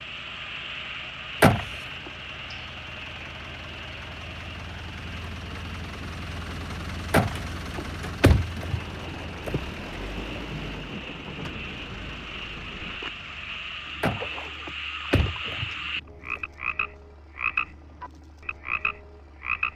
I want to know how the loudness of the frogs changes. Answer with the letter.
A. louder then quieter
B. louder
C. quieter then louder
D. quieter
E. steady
C.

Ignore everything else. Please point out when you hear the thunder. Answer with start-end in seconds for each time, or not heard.
8.7-13.0.